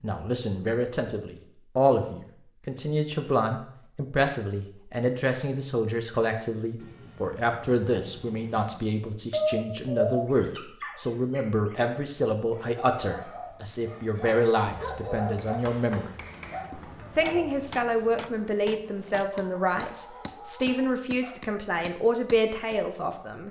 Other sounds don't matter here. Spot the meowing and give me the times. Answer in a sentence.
The meowing can be heard from 9.3 to 10.2 s.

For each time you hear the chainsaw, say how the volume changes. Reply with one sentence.
You can't hear the chainsaw here.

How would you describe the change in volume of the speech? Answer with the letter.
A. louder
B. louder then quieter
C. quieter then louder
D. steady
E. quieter
D.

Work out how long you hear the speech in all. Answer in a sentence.
The speech can be heard for 23 seconds in total.